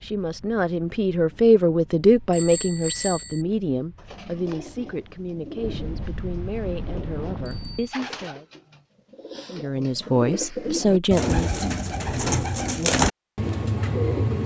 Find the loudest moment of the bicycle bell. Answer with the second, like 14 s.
3 s.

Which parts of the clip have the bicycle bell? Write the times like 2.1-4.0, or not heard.
2.3-3.5, 7.5-7.9.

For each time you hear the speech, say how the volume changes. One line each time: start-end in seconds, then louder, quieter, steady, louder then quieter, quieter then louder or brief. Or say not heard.
0.0-8.4 quieter
9.5-11.6 brief.